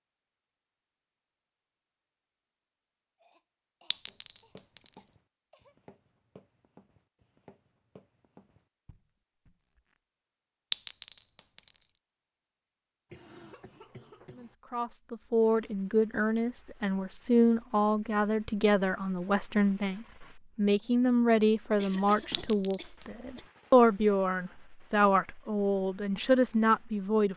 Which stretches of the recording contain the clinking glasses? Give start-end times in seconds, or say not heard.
3.9-5.0, 10.7-12.0, 22.3-23.1.